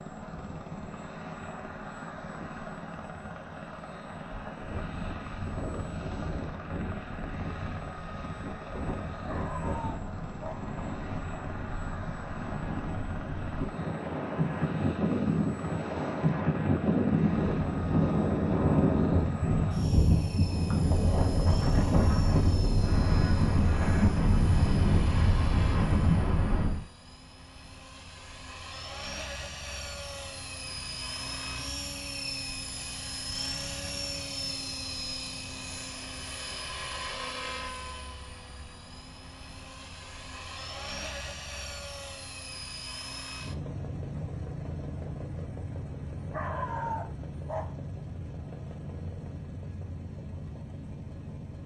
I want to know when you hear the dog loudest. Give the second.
47 s.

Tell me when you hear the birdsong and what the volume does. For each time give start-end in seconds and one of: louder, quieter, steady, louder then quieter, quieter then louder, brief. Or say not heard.
not heard.